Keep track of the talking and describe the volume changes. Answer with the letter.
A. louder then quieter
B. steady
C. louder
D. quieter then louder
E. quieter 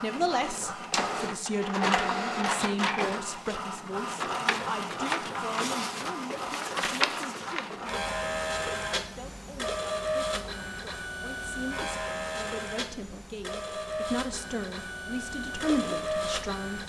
D.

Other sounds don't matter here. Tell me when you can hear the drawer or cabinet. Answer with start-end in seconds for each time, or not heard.
not heard.